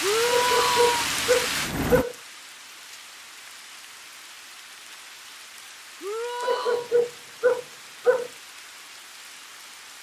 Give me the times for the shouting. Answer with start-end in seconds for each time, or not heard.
0.0-1.1, 6.0-6.9.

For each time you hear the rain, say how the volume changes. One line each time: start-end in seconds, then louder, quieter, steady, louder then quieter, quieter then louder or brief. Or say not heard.
0.0-9.9 quieter.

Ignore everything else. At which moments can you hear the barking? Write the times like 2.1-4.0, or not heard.
0.2-2.1, 6.4-8.3.